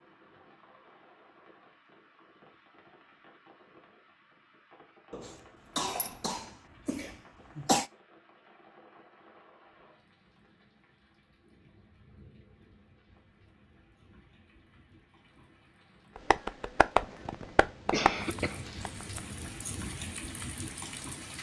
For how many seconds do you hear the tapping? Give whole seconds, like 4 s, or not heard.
3 s.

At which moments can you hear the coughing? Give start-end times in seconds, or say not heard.
5.1-7.8, 17.0-18.6.